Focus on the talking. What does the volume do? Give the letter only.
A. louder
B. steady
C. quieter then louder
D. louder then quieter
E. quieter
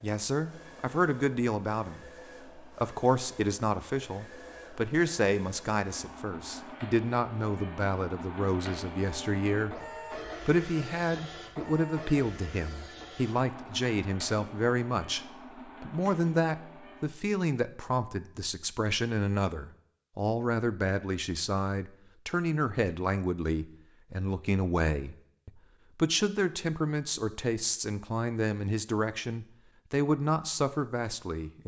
B.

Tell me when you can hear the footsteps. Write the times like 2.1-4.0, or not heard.
not heard.